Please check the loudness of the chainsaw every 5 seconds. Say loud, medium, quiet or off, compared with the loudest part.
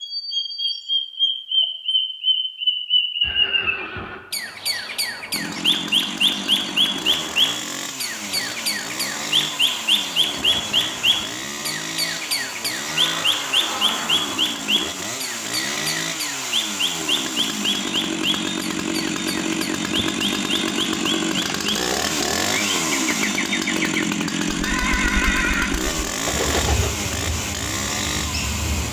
off, medium, medium, loud, loud, loud.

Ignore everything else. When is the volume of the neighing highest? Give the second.
25 s.